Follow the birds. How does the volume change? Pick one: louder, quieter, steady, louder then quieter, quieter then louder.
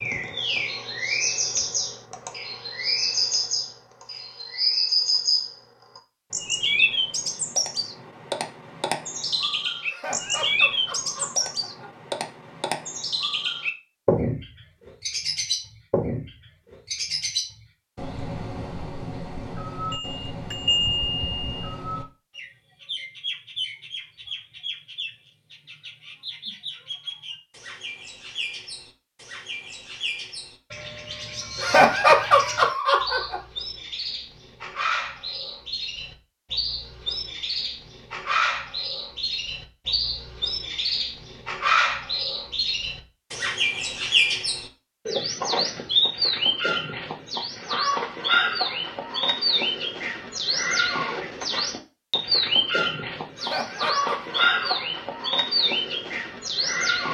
quieter then louder.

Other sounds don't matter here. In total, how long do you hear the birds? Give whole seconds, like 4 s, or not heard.
57 s.